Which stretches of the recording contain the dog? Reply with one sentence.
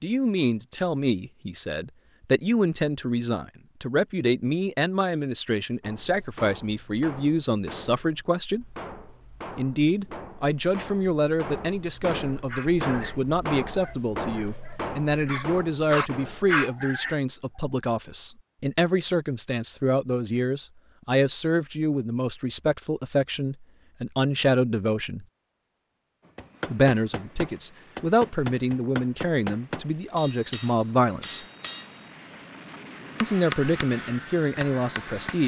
The dog can be heard from 12.4 to 17.6 s.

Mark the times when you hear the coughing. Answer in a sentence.
The coughing can't be heard in this clip.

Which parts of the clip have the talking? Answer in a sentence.
The talking can be heard from 0.0 to 8.7 s, from 9.6 to 25.2 s, from 26.7 to 31.4 s and from 33.2 to 35.4 s.